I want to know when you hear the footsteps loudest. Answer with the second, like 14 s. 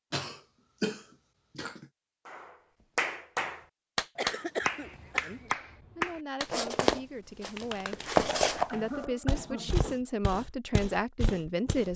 8 s.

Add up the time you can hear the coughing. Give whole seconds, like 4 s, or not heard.
4 s.